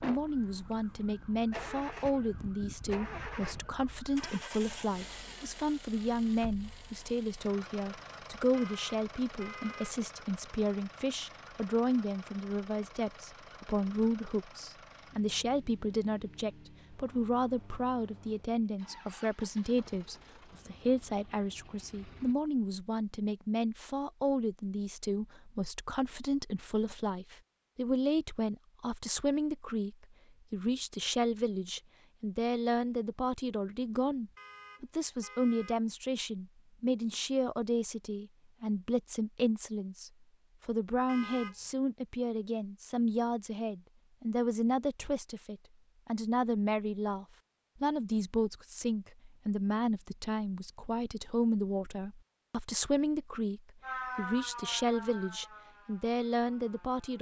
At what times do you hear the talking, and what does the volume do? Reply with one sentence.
The talking can be heard from 0.0 to 57.1 s, at a steady volume.